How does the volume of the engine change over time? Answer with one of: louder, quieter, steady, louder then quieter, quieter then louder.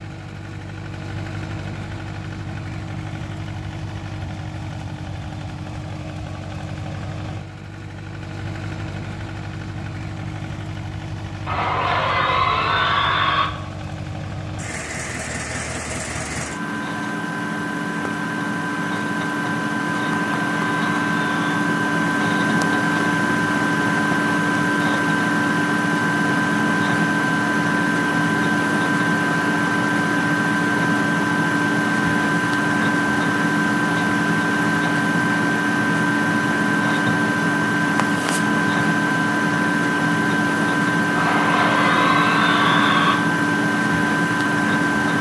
louder.